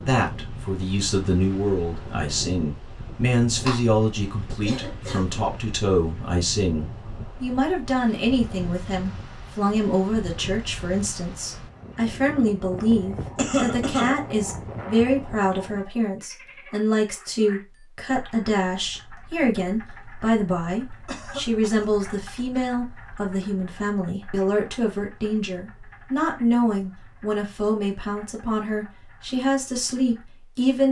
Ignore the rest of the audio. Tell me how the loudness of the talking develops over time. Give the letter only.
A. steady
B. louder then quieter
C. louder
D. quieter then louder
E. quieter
A.